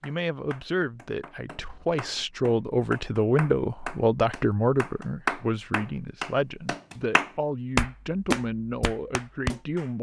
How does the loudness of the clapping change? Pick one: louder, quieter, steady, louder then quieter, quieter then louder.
louder.